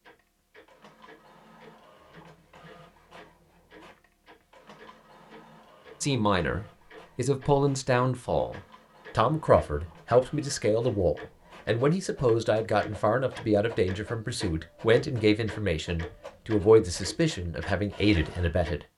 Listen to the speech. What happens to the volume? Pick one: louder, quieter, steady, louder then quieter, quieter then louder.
steady.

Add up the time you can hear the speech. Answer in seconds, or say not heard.
13 s.